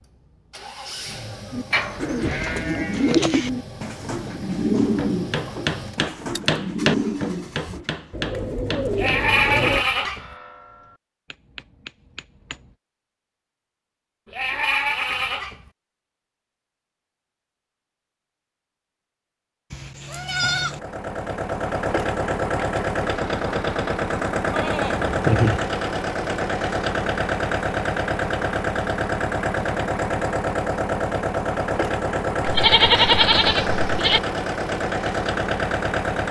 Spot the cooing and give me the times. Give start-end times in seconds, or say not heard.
1.5-9.8.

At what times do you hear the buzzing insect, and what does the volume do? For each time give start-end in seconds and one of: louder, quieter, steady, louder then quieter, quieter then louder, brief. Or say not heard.
not heard.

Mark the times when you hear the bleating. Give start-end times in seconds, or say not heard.
1.7-3.5, 8.9-10.3, 14.3-15.7, 19.7-20.8, 24.5-25.6, 32.5-34.2.